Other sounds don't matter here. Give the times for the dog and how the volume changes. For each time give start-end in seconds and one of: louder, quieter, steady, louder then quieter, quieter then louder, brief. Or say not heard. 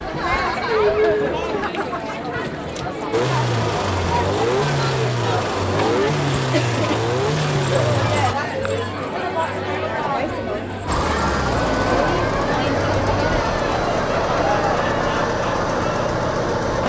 not heard.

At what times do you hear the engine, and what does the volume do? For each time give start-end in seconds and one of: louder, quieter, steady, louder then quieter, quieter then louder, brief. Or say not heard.
3.1-8.3 steady
10.8-16.8 steady.